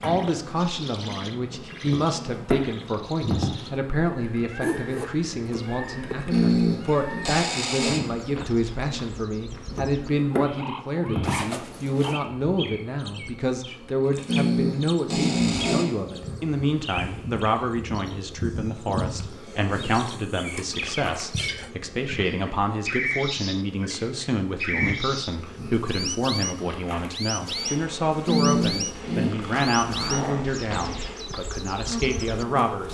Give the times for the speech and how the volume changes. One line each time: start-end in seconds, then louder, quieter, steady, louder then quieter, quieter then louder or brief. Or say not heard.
0.0-32.8 steady.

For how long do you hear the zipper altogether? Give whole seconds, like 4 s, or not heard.
4 s.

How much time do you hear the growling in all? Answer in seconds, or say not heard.
4 s.